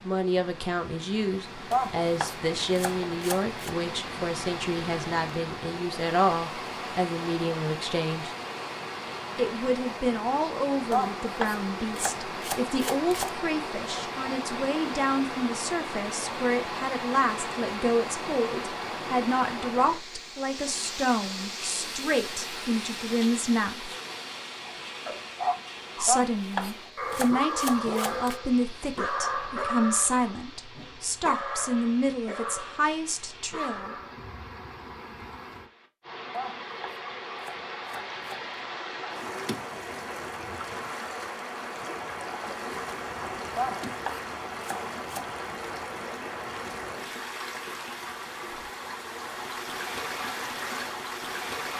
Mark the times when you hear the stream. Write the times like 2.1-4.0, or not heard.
0.0-51.7.